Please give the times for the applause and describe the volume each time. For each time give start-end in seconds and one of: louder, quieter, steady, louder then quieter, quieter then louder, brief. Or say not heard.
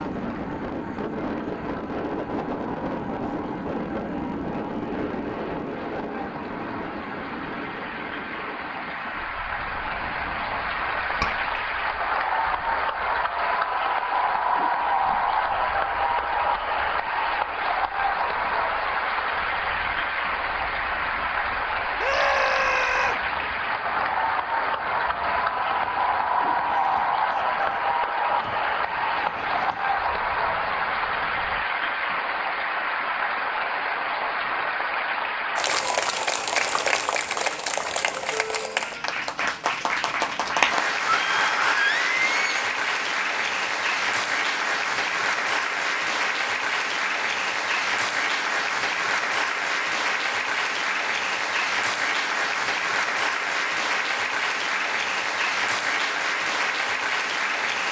0.0-57.8 louder.